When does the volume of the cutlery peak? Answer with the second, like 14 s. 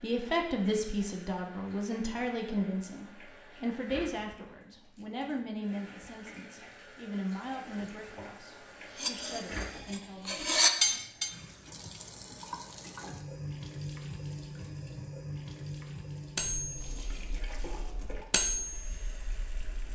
11 s.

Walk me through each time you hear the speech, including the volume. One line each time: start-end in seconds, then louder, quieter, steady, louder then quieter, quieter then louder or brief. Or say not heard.
0.0-10.4 quieter.